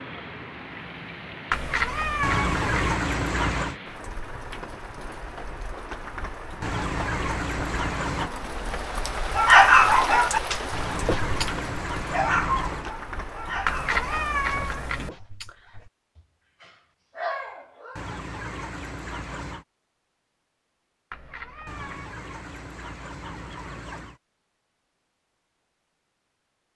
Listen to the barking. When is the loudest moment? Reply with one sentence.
The loudest moment of the barking is at 10 seconds.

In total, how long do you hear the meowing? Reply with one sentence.
You can hear the meowing for 4 seconds altogether.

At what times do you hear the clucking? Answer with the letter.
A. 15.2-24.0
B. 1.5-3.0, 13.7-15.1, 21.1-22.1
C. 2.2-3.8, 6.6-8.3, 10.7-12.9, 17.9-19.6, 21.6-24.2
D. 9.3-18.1
C.